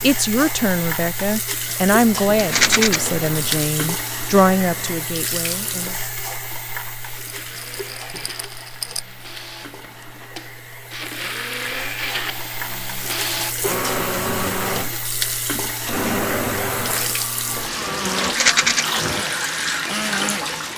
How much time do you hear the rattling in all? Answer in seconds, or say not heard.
3 s.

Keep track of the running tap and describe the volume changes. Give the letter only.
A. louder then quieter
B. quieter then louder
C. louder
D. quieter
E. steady
B.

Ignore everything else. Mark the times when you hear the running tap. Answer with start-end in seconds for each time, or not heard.
0.0-20.7.